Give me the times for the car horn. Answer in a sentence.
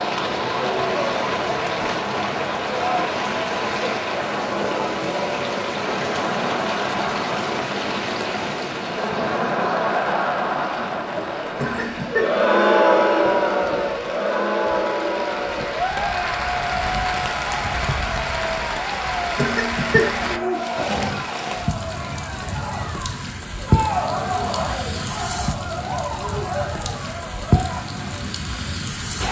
The car horn can't be heard in this clip.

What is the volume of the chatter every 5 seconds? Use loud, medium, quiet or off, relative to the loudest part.
medium, medium, loud, medium, medium, medium.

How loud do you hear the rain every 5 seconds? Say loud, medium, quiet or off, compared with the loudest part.
loud, loud, medium, loud, loud, loud.